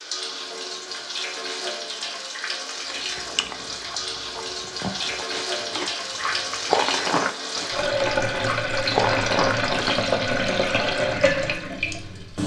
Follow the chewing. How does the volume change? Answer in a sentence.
The volume of the chewing goes up.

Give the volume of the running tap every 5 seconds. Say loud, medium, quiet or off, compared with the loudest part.
medium, loud, loud.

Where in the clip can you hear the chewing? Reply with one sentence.
The chewing can be heard from 2.8 to 10.1 s.